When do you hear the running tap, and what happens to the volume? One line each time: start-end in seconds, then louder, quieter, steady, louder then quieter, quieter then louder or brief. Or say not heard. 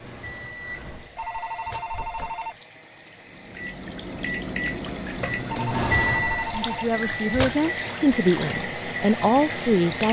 0.0-10.0 louder.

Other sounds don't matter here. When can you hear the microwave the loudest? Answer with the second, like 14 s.
6 s.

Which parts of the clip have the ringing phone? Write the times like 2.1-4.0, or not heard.
1.1-2.5, 5.5-7.0.